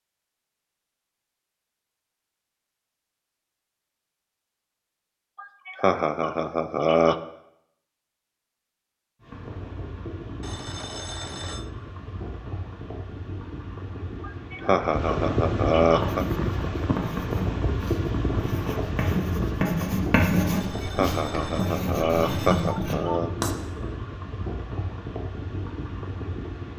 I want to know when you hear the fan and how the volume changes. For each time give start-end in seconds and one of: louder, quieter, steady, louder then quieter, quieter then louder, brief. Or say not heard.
9.2-26.7 louder then quieter.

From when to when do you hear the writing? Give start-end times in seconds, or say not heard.
15.9-23.5.